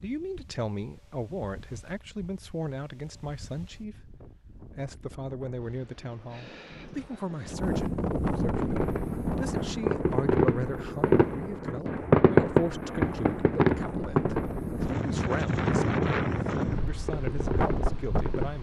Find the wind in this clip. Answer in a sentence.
The wind can be heard from 0.0 to 18.5 s.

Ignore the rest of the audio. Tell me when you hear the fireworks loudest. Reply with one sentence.
The loudest moment of the fireworks is at 12 seconds.